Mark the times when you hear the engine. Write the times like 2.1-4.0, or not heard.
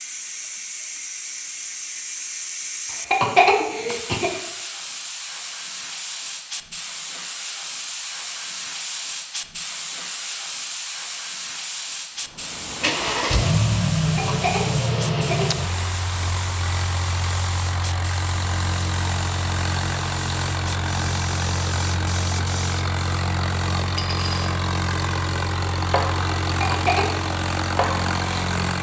12.3-28.7.